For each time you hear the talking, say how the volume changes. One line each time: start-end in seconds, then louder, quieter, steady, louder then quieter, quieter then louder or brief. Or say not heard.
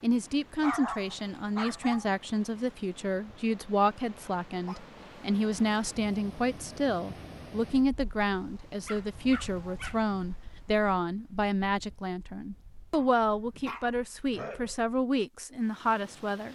0.0-16.5 steady.